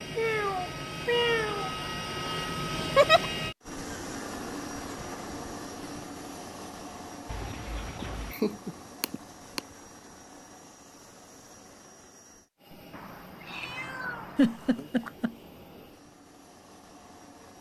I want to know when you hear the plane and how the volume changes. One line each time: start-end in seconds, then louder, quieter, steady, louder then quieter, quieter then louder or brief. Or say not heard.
0.0-17.5 quieter.